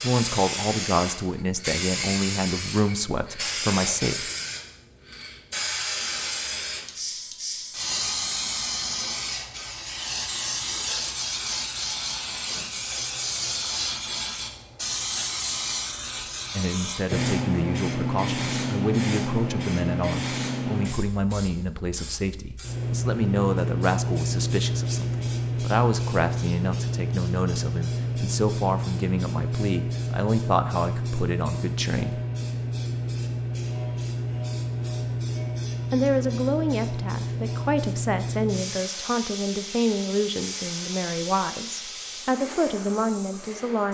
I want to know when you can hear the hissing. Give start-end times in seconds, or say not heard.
0.0-43.8.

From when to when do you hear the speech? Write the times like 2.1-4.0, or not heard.
0.0-4.3, 16.6-32.2, 35.9-43.8.